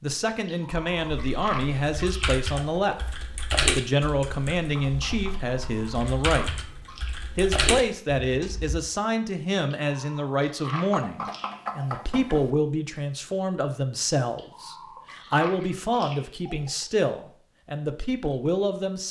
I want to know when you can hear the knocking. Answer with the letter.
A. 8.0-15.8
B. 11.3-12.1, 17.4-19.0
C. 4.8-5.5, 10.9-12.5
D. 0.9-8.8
C.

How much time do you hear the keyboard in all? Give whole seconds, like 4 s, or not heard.
8 s.